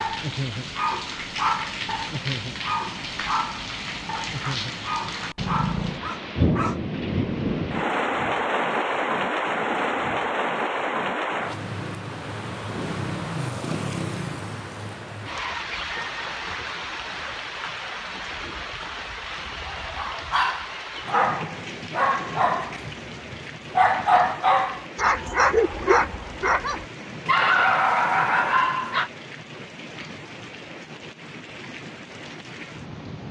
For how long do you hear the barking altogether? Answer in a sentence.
The barking can be heard for 16 seconds in total.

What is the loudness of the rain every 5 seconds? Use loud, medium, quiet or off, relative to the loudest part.
medium, loud, loud, medium, medium, quiet, quiet.